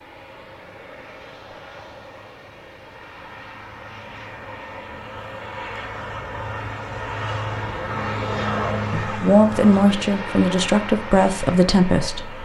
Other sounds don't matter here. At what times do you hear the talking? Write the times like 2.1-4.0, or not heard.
8.9-12.4.